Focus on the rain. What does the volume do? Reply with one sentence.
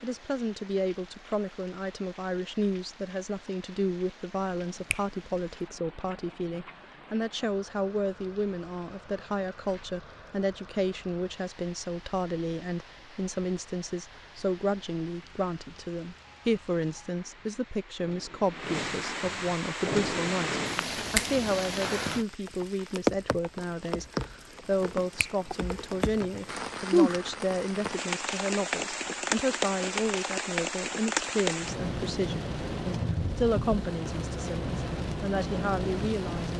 The volume of the rain goes up.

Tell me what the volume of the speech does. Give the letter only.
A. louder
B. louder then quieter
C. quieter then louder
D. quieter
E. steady
E.